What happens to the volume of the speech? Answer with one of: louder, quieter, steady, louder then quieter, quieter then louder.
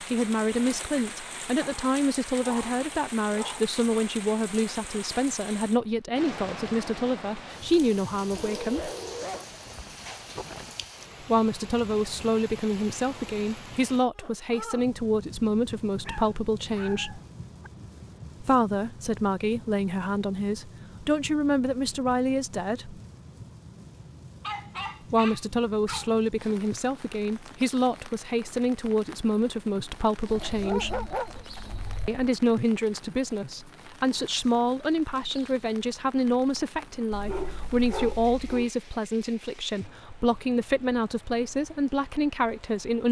steady.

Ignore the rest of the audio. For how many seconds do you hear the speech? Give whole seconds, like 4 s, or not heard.
36 s.